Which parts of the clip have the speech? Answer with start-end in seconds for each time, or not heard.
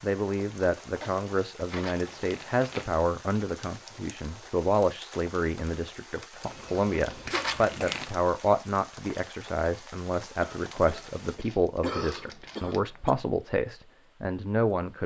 0.0-15.0.